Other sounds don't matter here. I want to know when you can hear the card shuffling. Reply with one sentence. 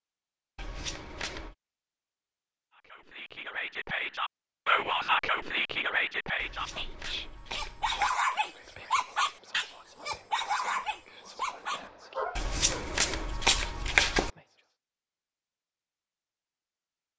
The card shuffling can be heard from 0.6 to 1.6 s, from 6.3 to 8.2 s and from 12.3 to 14.3 s.